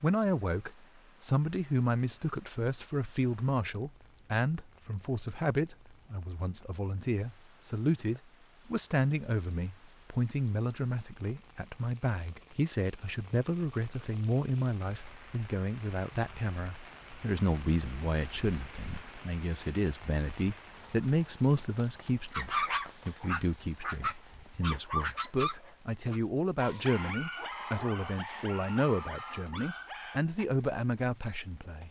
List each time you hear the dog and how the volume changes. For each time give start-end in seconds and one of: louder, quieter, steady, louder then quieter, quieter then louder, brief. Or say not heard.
22.3-30.4 quieter.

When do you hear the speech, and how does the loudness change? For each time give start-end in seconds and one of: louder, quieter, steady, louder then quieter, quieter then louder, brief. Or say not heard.
0.0-31.8 steady.